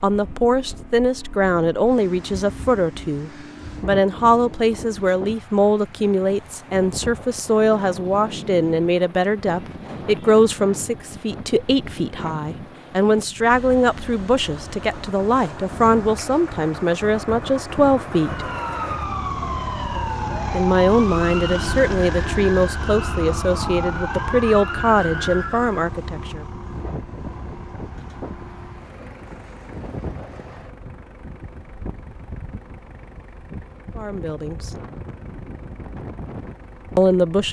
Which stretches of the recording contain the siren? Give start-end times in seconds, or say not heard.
18.2-25.9.